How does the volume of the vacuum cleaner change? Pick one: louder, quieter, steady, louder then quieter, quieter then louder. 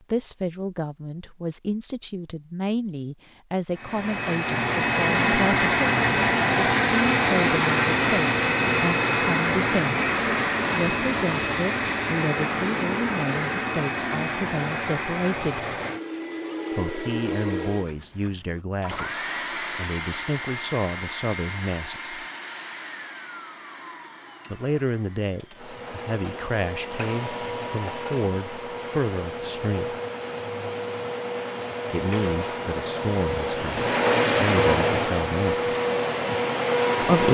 quieter then louder.